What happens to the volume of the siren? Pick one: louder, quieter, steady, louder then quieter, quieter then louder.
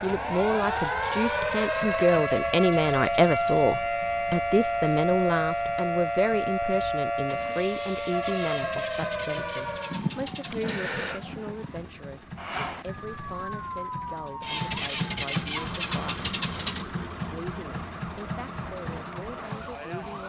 quieter.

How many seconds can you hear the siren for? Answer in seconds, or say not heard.
20 s.